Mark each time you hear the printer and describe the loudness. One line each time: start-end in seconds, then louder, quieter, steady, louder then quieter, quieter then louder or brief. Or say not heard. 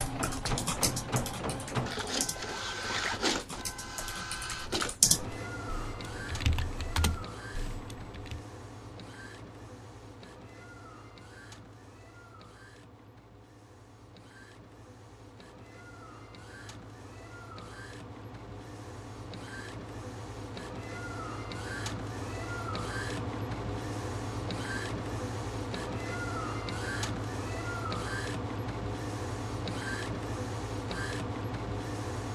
0.0-32.3 quieter then louder.